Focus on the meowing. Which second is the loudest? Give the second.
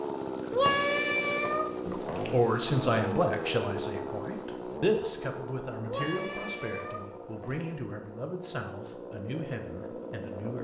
1 s.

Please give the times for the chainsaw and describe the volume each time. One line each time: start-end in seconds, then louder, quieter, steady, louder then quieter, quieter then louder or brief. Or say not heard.
0.0-10.5 quieter.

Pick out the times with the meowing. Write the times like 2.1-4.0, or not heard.
0.5-2.4, 5.8-7.7.